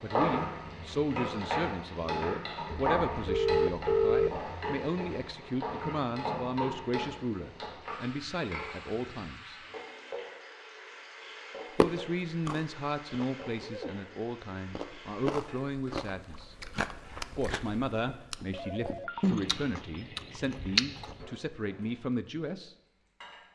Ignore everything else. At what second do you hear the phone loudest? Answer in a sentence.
The loudest moment of the phone is at 4 seconds.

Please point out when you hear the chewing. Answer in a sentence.
The chewing can be heard from 11.8 to 21.2 s.